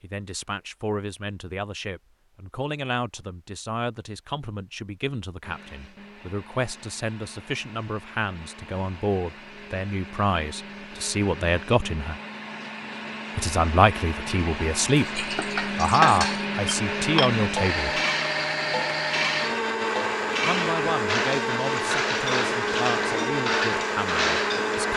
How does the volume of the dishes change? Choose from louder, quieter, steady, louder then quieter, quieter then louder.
steady.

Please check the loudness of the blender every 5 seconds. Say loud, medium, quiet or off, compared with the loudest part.
off, quiet, medium, loud, loud.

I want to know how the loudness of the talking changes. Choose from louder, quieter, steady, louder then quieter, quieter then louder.
louder then quieter.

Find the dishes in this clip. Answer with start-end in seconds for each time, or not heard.
14.8-24.8.